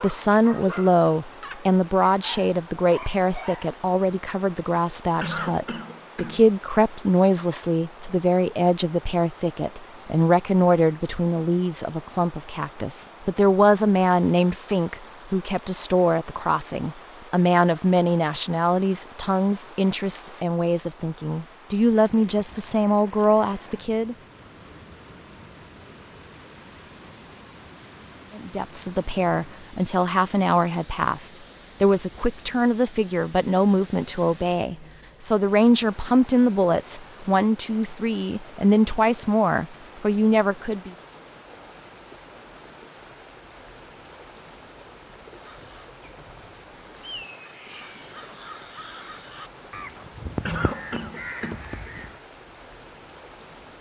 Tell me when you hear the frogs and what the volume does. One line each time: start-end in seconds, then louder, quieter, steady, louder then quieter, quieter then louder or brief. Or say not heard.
not heard.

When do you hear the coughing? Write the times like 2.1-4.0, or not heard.
5.2-6.5, 50.5-51.6.